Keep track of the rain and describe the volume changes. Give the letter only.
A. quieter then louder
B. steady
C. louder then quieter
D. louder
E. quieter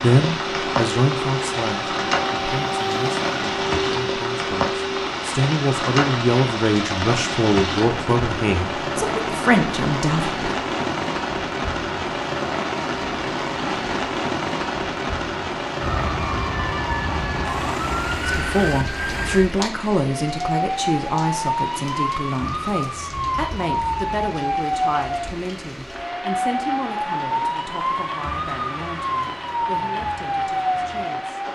E.